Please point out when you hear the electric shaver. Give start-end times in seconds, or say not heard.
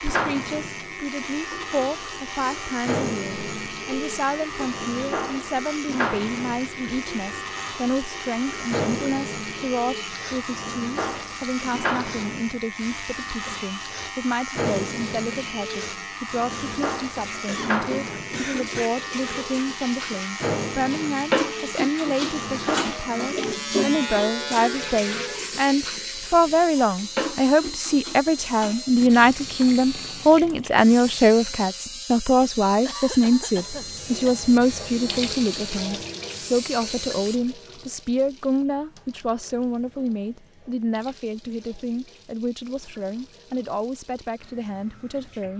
0.0-37.4.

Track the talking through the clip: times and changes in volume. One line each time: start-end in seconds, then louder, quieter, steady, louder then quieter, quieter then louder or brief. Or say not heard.
0.0-45.5 louder then quieter.